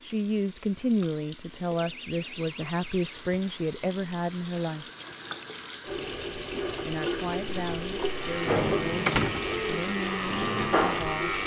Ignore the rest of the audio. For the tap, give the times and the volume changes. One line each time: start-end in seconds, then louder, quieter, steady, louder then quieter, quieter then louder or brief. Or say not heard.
0.0-11.4 louder.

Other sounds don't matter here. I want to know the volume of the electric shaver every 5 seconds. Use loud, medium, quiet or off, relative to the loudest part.
off, loud, loud.